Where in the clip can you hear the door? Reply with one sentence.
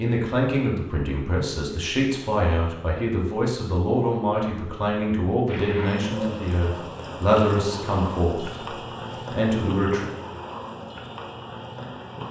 You can't hear the door here.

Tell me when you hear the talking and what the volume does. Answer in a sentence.
The talking can be heard from 0.0 to 10.1 s, at a steady volume.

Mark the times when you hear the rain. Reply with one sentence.
You can hear the rain from 5.5 to 12.2 s.